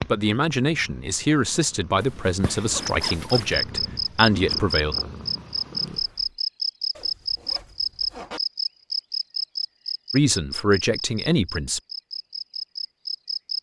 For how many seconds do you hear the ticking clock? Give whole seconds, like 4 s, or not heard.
not heard.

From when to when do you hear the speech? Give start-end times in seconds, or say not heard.
0.0-5.0, 10.1-11.8.